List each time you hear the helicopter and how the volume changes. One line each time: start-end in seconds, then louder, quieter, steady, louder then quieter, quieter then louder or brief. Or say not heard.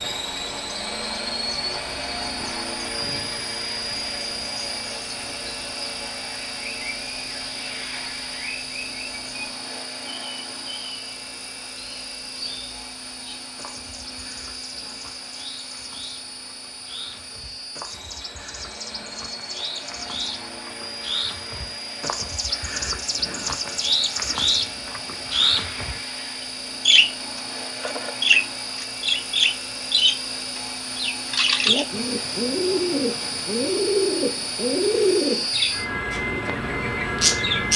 0.0-37.7 quieter then louder.